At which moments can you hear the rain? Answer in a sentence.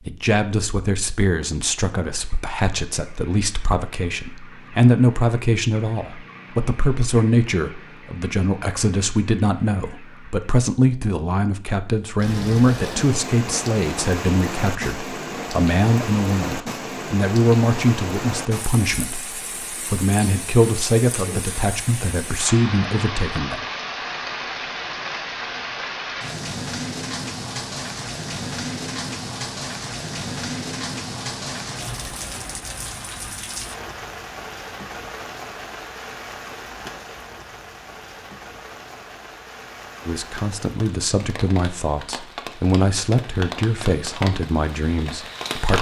You can hear the rain from 12.2 to 45.7 s.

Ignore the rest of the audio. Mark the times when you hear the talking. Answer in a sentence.
The talking can be heard from 0.1 to 23.6 s and from 40.0 to 45.7 s.